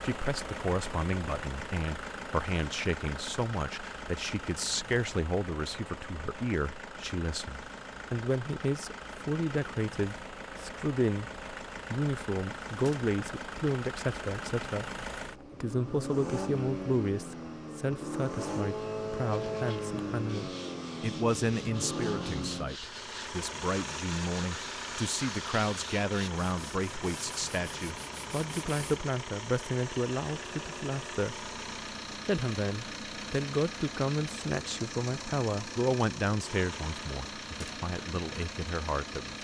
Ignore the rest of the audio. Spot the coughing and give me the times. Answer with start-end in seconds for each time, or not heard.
not heard.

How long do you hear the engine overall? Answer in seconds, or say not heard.
39 s.